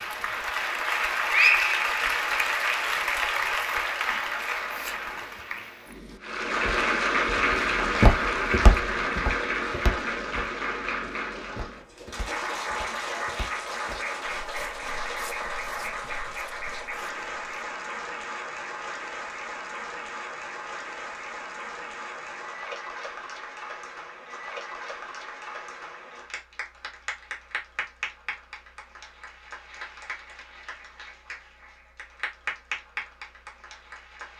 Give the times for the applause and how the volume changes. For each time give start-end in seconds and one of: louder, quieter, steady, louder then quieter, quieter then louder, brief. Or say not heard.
0.0-34.3 quieter.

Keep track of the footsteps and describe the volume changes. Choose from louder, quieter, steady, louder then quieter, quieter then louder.
quieter.